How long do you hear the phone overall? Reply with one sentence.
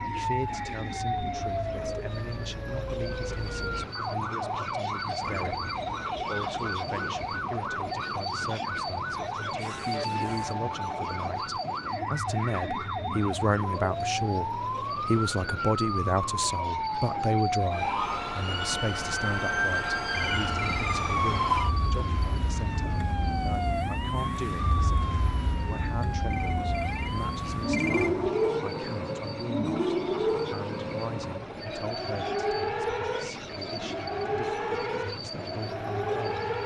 The phone can be heard for 4 seconds in total.